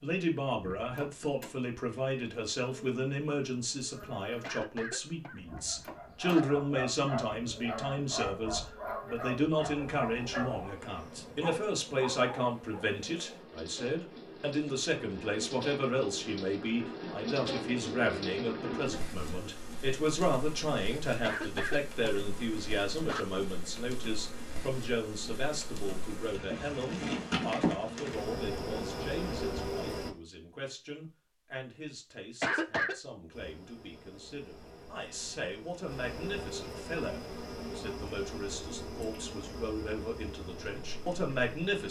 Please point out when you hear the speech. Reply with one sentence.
You can hear the speech from 0.0 to 41.8 s.